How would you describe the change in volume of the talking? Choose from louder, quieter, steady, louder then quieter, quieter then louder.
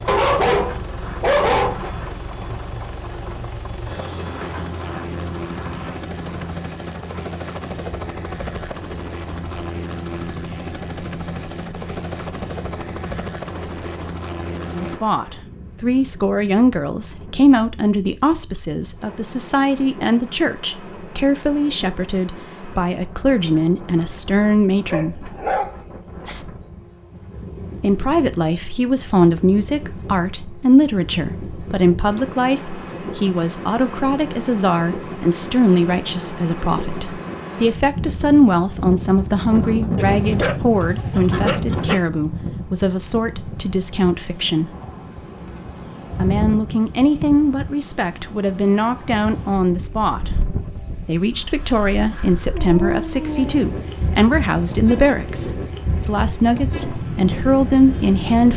steady.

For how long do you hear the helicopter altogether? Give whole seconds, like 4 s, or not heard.
15 s.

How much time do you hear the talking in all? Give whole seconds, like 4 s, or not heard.
39 s.